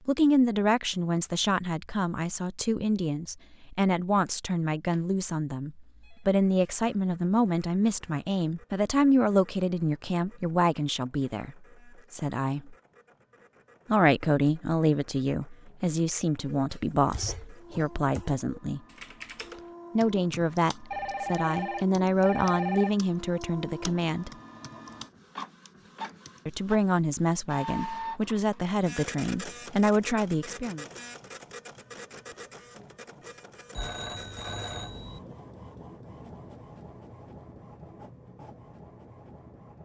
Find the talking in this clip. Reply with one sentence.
The talking can be heard from 0.1 to 12.8 s, from 13.9 to 18.8 s, from 19.9 to 24.3 s and from 26.4 to 30.9 s.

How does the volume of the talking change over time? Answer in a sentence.
The volume of the talking stays about the same.